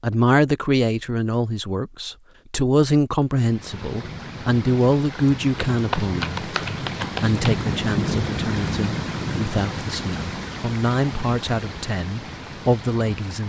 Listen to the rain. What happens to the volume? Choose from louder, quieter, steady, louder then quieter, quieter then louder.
louder then quieter.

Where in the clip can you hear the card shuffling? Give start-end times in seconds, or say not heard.
5.7-7.6.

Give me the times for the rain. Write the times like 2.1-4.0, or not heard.
3.4-13.4.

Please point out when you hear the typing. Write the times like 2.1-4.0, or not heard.
not heard.